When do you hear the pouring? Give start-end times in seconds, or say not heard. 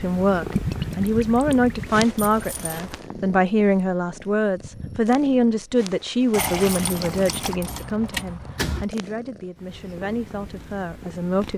0.5-2.5, 6.3-7.6.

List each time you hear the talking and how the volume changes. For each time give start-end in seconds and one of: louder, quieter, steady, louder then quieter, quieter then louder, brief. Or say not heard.
0.0-11.5 quieter.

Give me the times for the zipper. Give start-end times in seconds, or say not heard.
not heard.